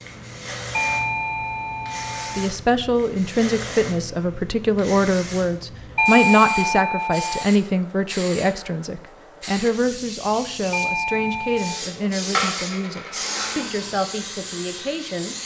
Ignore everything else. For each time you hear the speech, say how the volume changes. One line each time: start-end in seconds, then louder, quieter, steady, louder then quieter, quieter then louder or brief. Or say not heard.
2.4-15.3 quieter.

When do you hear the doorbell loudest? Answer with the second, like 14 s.
6 s.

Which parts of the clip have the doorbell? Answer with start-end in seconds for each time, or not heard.
0.7-2.5, 6.0-7.5, 10.7-11.8.